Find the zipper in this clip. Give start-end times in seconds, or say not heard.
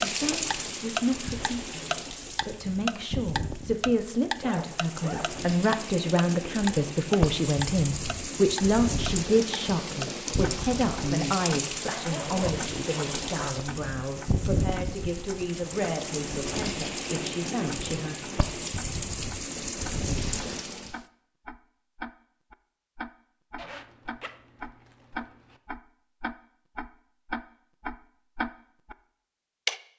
4.4-5.3, 11.8-13.6, 23.6-25.6.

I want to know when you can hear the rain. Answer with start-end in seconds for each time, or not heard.
0.0-21.0.